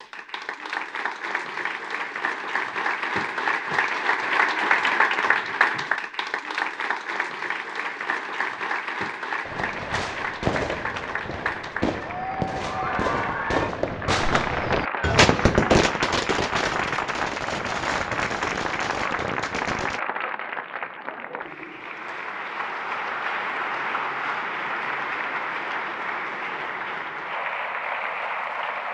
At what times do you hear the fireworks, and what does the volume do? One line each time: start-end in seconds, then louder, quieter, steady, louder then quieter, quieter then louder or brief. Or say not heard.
9.4-20.0 louder then quieter.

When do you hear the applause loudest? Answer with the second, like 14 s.
5 s.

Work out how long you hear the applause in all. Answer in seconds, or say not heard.
29 s.